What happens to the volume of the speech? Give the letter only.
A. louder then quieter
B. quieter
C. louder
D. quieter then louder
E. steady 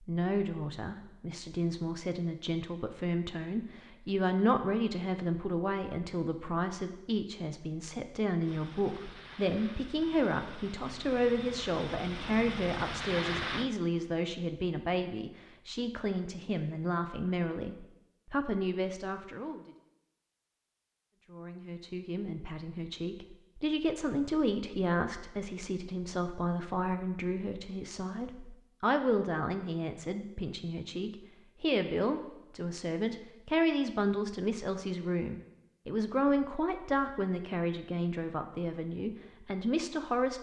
E.